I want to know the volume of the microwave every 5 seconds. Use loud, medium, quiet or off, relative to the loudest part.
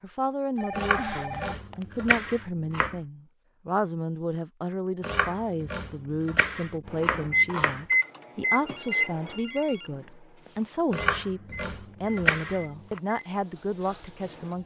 off, loud, quiet.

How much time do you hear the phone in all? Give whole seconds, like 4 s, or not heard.
3 s.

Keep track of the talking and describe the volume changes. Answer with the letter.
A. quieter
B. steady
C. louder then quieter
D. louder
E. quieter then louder
B.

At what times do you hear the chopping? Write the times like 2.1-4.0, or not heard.
0.8-3.0, 5.0-7.8, 10.9-13.0.